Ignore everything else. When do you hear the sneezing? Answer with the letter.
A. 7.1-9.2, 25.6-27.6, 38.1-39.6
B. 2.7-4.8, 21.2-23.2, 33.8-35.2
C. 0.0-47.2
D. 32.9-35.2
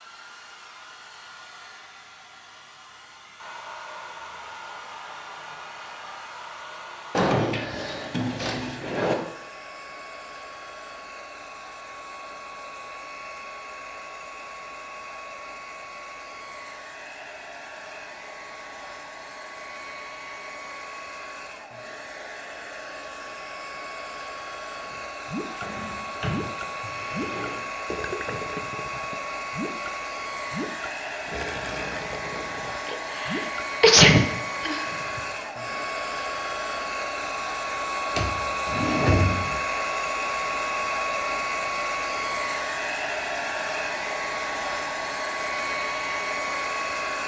D.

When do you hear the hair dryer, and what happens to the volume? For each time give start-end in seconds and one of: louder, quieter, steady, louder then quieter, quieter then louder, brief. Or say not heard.
0.0-47.2 louder.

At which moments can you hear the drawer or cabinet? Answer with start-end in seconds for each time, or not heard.
7.1-9.2, 25.6-27.6, 38.1-39.6.